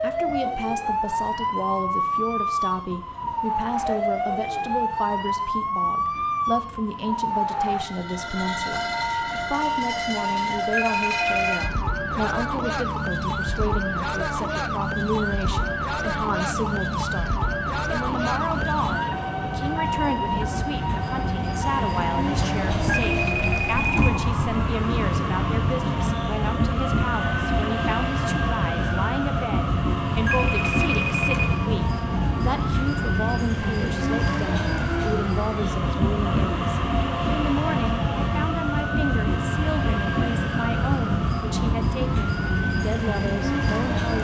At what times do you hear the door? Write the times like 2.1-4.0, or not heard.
not heard.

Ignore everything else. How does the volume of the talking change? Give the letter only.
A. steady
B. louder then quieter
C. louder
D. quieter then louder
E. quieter
A.